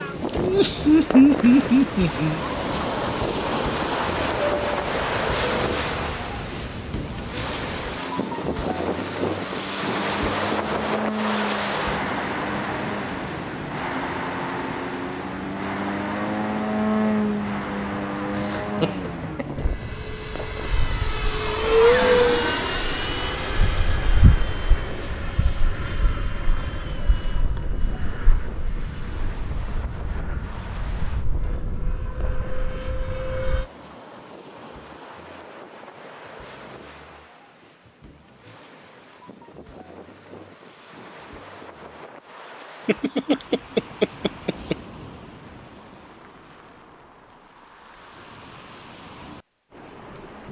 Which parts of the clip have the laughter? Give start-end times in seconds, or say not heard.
0.3-2.4, 18.4-19.6, 42.9-44.8.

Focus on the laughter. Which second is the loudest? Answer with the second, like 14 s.
1 s.